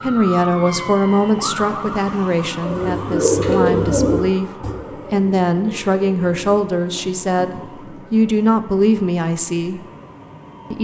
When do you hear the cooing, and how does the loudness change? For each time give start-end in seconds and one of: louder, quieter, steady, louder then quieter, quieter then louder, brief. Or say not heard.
2.5-8.1 quieter.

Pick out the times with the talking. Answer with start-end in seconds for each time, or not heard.
0.0-9.8.